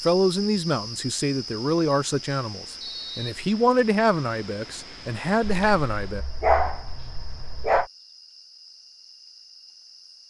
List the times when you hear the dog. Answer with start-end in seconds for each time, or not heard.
5.4-7.8.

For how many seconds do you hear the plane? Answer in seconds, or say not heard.
not heard.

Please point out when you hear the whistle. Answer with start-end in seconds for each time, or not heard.
2.8-3.5.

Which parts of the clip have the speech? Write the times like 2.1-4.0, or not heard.
0.0-6.2.